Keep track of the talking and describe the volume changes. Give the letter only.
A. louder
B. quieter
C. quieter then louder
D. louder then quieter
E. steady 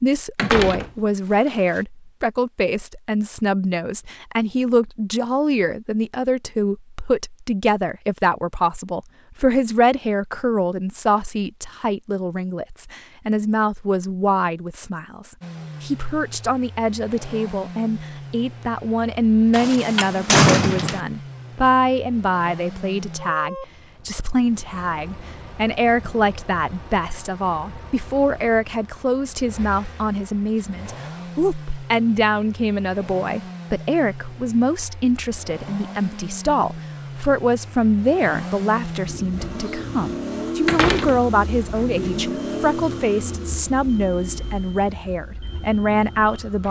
E.